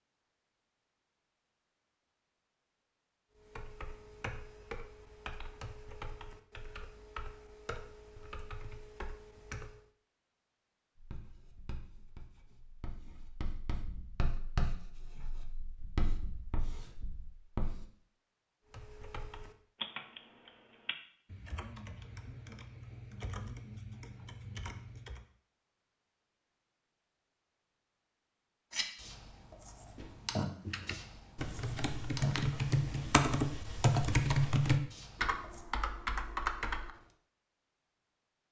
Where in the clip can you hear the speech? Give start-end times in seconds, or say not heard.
not heard.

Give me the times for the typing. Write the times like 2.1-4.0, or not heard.
3.4-9.8, 18.7-25.2, 30.6-36.9.